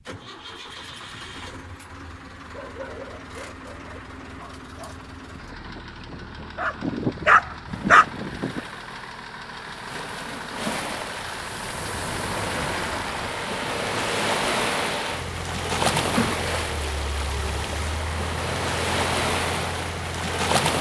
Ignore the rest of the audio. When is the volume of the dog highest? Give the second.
8 s.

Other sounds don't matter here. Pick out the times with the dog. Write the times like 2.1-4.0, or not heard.
2.5-8.6.